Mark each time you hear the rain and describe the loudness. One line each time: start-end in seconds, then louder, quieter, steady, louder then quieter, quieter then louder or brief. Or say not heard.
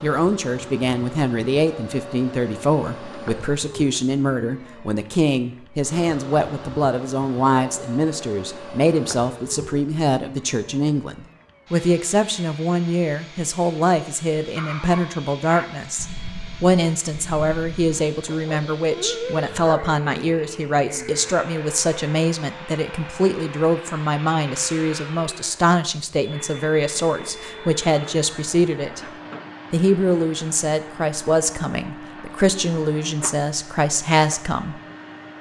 not heard.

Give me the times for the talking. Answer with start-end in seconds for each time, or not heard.
0.0-29.0, 29.7-34.8.